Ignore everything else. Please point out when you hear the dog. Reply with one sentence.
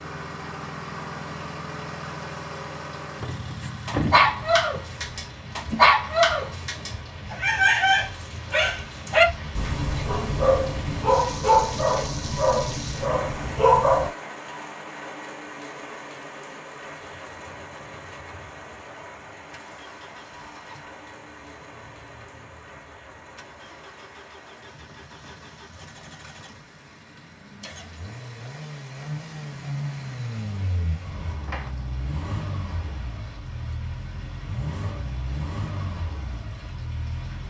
You can hear the dog from 3.6 to 14.1 s.